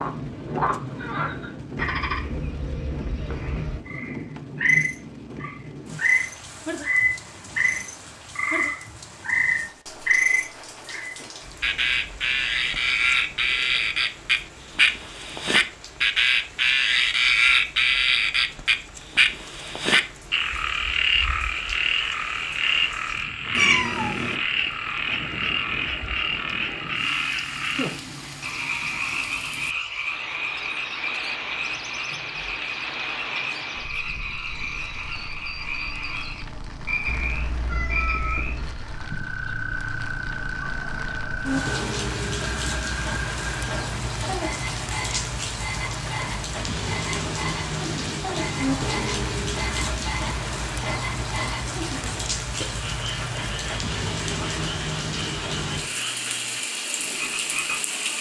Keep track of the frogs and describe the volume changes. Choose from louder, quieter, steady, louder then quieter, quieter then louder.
quieter.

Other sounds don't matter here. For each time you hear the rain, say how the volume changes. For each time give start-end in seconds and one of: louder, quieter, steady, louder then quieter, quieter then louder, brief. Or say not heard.
0.0-58.1 quieter then louder.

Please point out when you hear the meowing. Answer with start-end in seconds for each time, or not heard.
23.5-24.4, 37.0-38.8.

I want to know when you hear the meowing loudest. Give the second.
24 s.